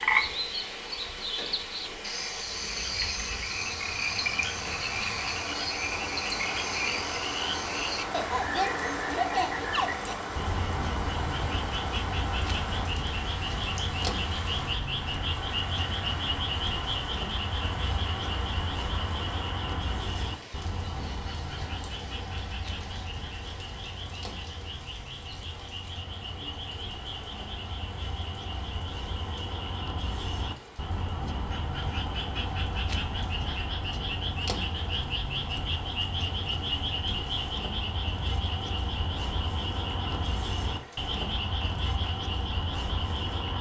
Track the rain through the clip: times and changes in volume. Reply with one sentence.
You can hear the rain from 0.0 to 43.5 s, getting quieter.